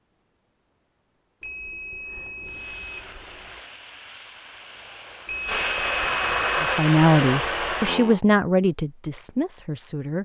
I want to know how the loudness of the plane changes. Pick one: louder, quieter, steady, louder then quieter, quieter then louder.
louder.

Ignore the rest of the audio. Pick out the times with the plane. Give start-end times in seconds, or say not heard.
2.5-8.2.